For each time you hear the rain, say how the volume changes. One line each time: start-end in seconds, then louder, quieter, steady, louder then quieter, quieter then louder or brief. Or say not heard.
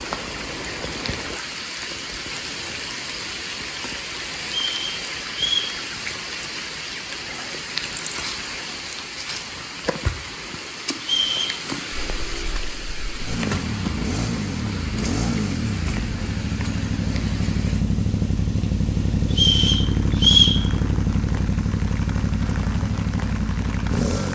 0.0-24.3 quieter.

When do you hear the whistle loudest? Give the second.
20 s.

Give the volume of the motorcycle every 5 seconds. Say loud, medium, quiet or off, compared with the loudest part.
off, off, medium, loud, loud.